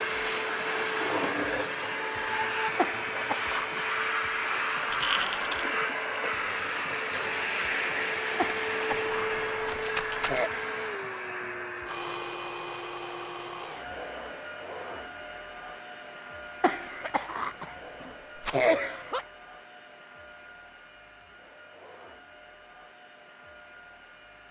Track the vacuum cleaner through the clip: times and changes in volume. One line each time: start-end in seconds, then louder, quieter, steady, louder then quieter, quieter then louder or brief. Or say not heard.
0.0-24.4 quieter.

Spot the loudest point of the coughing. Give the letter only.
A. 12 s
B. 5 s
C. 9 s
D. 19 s
D.